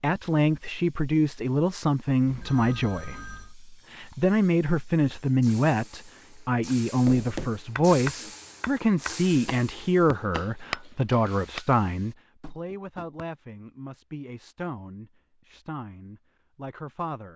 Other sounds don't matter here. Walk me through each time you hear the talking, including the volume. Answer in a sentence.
The talking can be heard from 0.0 to 17.3 s, getting quieter.